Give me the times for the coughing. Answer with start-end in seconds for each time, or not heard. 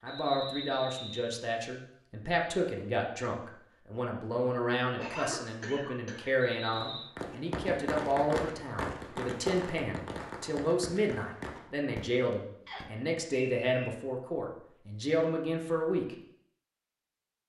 5.0-6.3.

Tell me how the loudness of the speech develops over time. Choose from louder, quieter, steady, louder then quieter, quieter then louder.
steady.